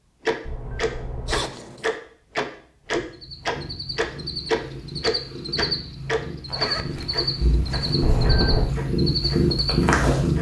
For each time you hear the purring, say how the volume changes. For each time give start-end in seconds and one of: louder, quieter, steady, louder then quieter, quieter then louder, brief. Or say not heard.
3.0-10.3 louder.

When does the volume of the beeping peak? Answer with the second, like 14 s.
8 s.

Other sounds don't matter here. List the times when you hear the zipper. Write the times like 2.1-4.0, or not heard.
1.2-1.9, 6.5-8.1.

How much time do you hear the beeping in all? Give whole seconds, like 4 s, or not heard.
2 s.